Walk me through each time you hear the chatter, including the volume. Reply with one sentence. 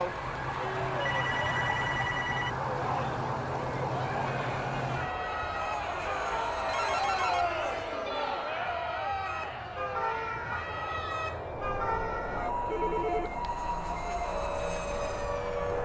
You can hear the chatter from 0.0 to 15.7 s, getting louder then quieter.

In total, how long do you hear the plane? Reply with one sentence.
The plane can be heard for 16 seconds in total.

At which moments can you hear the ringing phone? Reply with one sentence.
You can hear the ringing phone from 1.0 to 2.5 s, from 6.7 to 7.5 s and from 12.7 to 13.4 s.